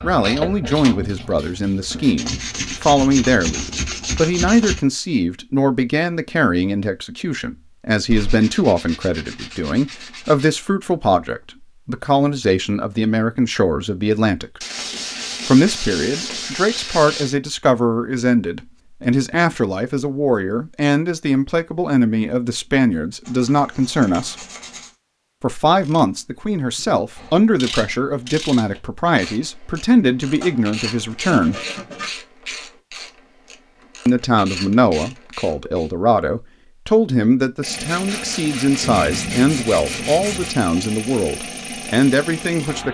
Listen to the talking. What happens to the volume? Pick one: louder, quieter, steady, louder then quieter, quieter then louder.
steady.